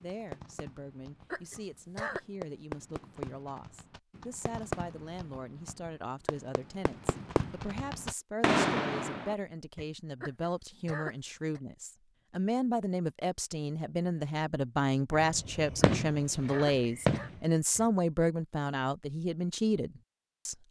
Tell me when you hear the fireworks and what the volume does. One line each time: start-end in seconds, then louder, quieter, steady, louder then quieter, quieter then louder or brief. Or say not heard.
0.0-9.8 louder
15.1-17.9 brief.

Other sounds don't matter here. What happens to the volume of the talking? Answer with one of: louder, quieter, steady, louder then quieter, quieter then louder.
louder.